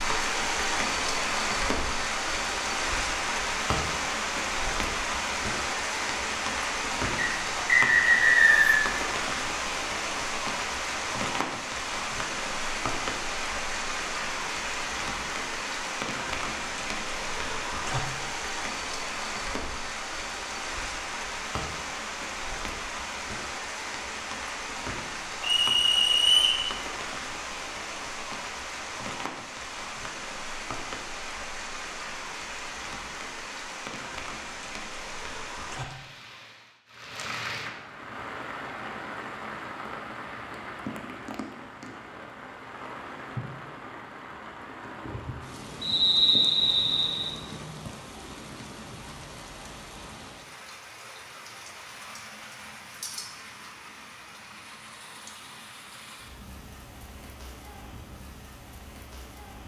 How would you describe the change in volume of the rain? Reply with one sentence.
The loudness of the rain goes down.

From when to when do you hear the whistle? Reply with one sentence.
You can hear the whistle from 7.2 to 8.8 s, from 25.4 to 26.6 s and from 45.8 to 47.3 s.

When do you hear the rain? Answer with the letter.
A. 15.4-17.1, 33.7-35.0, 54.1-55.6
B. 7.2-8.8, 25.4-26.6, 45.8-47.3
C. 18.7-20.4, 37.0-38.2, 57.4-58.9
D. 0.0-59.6
D.